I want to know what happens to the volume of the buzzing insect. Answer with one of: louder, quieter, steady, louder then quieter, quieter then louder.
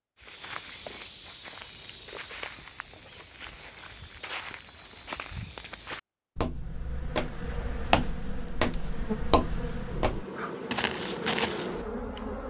louder.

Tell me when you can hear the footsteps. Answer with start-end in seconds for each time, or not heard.
0.1-11.7.